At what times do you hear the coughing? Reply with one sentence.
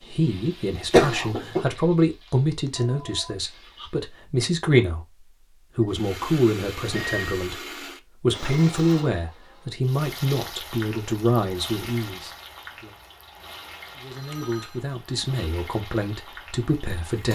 You can hear the coughing from 0.9 to 1.6 s.